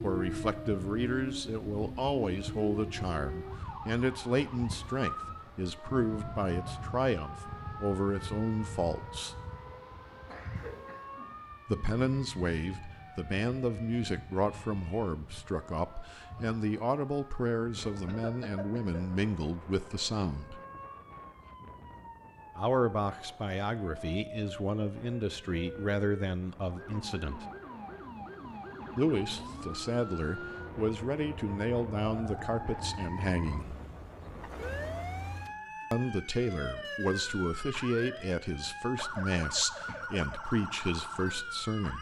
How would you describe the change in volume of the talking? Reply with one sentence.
The loudness of the talking stays about the same.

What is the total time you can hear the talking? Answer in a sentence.
The talking can be heard for 34 seconds in total.